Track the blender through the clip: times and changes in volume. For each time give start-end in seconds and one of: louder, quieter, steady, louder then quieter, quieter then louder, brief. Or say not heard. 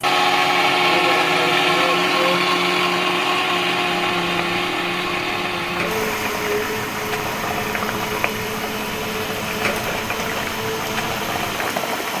0.0-12.1 quieter.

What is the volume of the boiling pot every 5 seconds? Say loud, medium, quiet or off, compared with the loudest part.
medium, loud, loud.